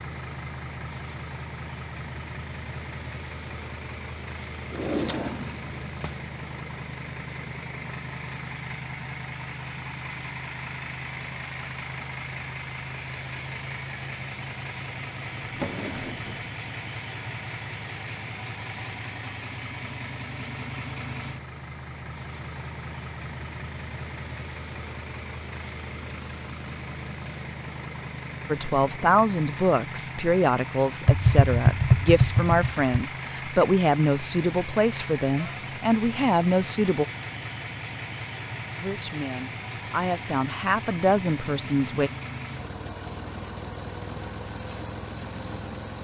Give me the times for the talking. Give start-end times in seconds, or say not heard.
28.4-37.0, 38.8-42.1.